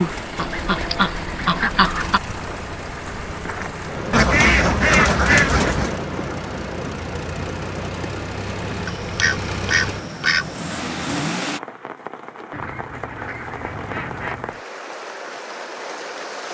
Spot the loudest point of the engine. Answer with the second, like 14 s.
11 s.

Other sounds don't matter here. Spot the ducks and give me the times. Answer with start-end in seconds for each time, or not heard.
0.3-2.2, 4.1-6.0, 8.8-10.7, 12.5-14.6.